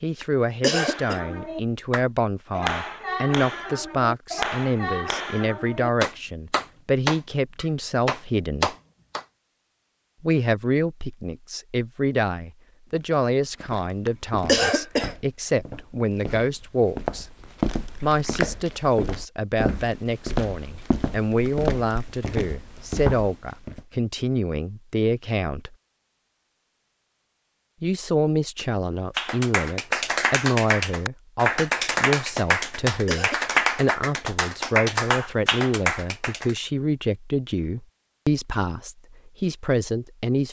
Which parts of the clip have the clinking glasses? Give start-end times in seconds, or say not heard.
not heard.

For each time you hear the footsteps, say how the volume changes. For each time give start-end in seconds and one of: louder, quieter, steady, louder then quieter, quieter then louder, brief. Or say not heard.
12.9-23.9 louder.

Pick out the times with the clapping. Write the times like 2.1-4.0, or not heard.
0.8-9.2, 29.1-36.5.